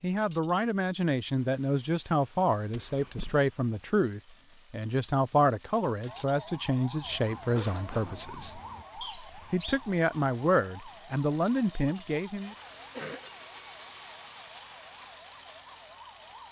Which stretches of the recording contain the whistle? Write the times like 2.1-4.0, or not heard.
9.0-9.8.